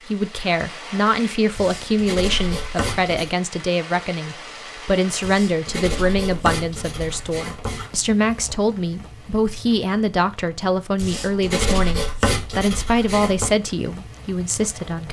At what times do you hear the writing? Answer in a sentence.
The writing can be heard from 1.6 to 3.3 s, from 5.2 to 7.9 s and from 10.9 to 13.6 s.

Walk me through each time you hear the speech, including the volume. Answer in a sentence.
You can hear the speech from 0.1 to 15.0 s, at a steady volume.